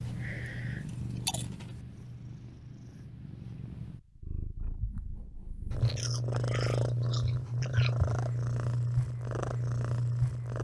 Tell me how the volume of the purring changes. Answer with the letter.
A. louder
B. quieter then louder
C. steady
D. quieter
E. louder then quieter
B.